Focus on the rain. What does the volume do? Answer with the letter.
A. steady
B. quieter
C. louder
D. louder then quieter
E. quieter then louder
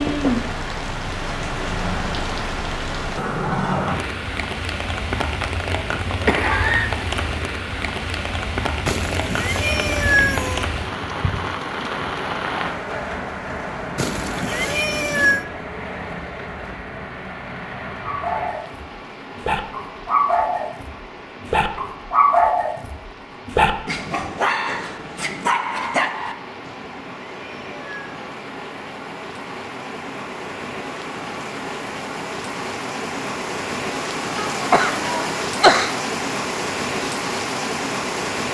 E.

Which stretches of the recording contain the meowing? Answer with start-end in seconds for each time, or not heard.
8.8-10.7, 13.9-15.4, 26.6-28.4.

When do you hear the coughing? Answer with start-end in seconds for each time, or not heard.
6.2-7.0, 34.4-35.9.